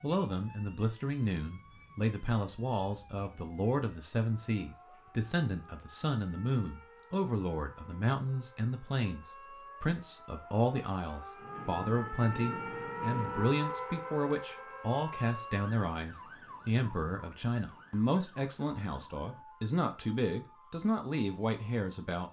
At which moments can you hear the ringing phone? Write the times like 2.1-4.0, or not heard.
not heard.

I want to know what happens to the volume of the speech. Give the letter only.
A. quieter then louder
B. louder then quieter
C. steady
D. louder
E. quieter
C.